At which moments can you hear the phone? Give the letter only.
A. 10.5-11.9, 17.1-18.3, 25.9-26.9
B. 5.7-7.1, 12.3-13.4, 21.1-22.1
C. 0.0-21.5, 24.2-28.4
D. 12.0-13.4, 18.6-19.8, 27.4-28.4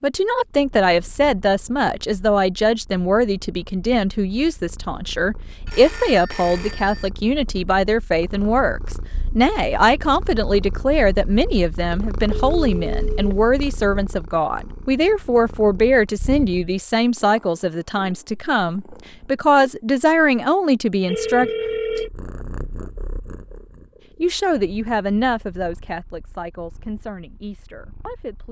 B.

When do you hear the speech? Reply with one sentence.
The speech can be heard from 0.0 to 21.5 s and from 24.2 to 28.4 s.